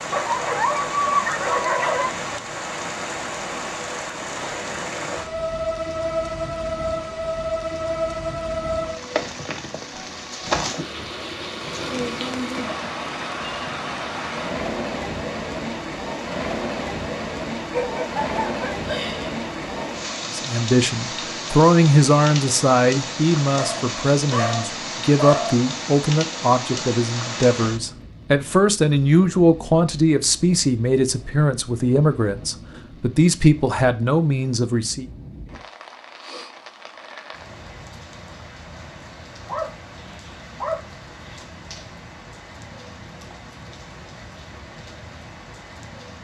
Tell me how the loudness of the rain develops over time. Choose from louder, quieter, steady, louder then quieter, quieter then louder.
quieter.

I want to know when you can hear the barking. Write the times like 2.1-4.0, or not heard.
0.1-2.1, 17.7-19.4, 23.6-25.6, 39.5-41.5.